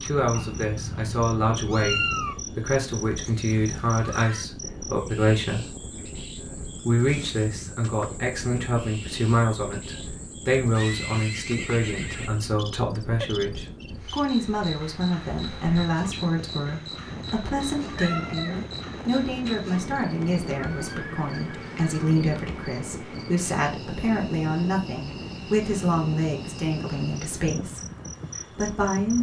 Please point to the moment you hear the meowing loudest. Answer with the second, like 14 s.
2 s.